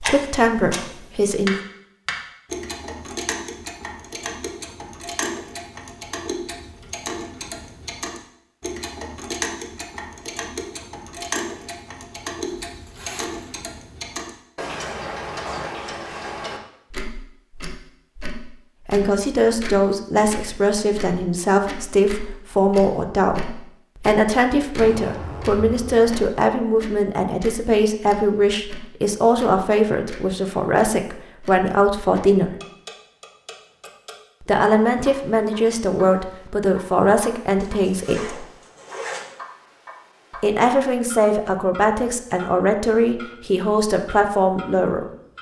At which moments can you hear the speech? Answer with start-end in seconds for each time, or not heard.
0.0-1.6, 18.9-32.5, 34.4-38.5, 40.4-45.1.